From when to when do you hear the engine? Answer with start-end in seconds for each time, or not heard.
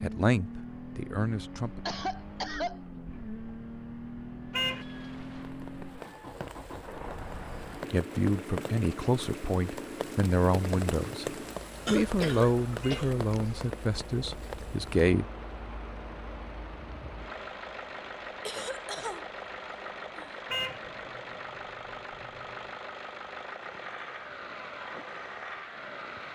0.0-26.3.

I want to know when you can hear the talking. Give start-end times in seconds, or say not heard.
0.0-1.9, 7.9-15.2.